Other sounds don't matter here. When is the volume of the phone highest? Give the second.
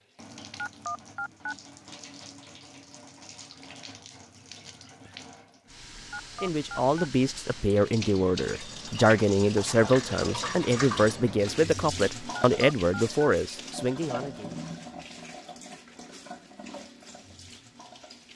1 s.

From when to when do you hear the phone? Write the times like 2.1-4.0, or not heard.
0.6-1.6, 6.1-7.1, 12.3-13.3.